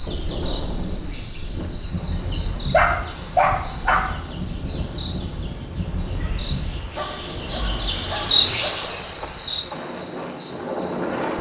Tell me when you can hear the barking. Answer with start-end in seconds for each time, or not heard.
2.7-4.0, 7.0-8.9.